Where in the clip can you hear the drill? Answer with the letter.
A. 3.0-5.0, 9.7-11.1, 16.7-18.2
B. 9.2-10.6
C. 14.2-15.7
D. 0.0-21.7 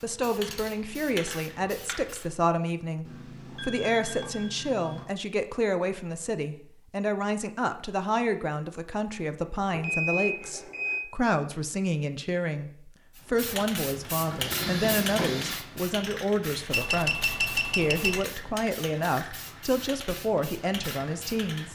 C.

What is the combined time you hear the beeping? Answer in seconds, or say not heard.
5 s.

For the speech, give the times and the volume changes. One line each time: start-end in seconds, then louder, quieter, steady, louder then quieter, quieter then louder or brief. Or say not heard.
0.0-21.7 steady.